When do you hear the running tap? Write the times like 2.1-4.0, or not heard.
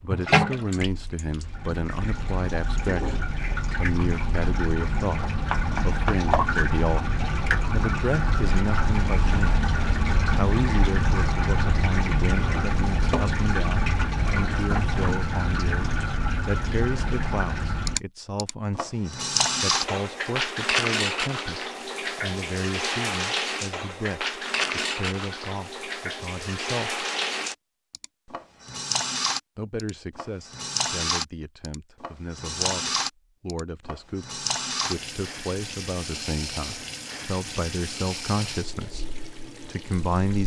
0.1-40.4.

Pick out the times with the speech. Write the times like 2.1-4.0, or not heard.
0.0-9.7, 10.3-27.1, 29.6-40.4.